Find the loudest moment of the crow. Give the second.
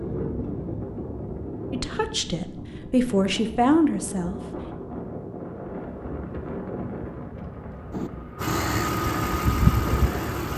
9 s.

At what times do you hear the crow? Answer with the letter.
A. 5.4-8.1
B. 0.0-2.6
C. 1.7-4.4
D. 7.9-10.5
D.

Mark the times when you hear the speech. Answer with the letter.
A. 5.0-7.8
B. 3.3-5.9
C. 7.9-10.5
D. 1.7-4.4
D.